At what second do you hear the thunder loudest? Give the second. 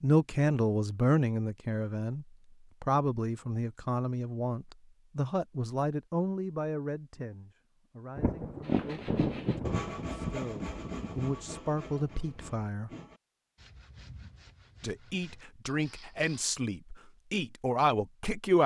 9 s.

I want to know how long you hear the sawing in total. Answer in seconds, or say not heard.
8 s.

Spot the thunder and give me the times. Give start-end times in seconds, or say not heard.
8.2-11.3.